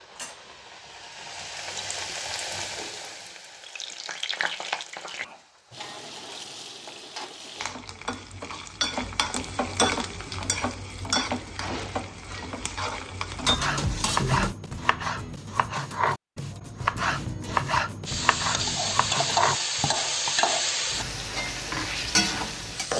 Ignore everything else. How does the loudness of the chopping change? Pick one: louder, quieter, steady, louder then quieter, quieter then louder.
steady.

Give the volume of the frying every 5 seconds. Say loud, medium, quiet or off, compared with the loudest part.
medium, medium, loud, loud, loud.